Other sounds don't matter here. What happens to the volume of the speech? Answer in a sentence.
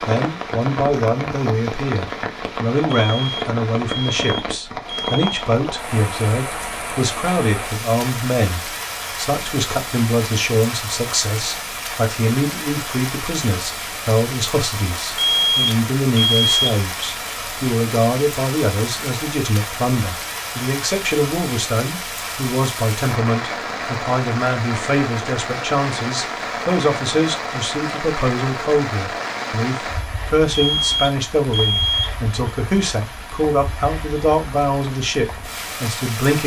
The volume of the speech stays about the same.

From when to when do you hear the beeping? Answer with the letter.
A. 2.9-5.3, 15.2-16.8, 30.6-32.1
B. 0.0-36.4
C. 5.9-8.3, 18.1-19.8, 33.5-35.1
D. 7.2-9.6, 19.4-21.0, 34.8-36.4
A.